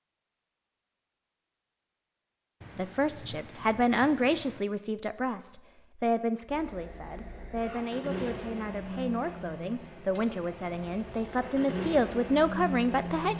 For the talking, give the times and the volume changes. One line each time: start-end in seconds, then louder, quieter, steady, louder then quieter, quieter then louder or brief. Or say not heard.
2.8-13.3 quieter then louder.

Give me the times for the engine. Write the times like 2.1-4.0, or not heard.
6.5-13.3.